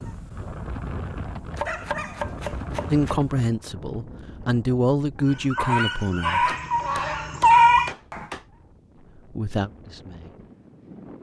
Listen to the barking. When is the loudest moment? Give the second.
8 s.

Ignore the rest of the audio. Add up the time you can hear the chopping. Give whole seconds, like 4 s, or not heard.
4 s.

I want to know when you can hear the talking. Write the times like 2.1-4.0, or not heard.
2.9-6.5, 9.2-10.4.